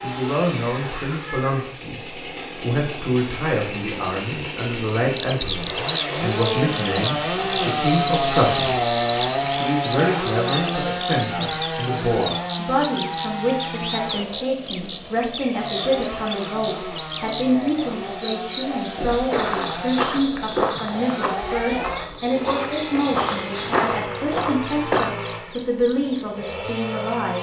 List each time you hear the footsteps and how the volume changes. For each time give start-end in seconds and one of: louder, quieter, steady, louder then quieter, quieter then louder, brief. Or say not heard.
18.9-25.1 quieter then louder.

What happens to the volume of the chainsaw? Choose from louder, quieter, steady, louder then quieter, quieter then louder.
louder then quieter.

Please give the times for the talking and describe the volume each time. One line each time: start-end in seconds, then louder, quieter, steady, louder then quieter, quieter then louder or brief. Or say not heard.
0.0-8.8 steady
9.6-27.3 steady.